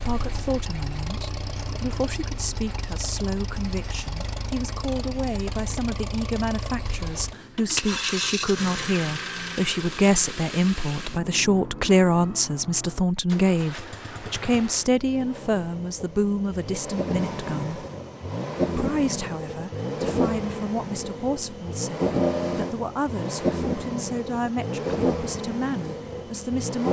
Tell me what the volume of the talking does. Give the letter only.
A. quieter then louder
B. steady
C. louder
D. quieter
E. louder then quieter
E.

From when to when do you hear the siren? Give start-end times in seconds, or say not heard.
not heard.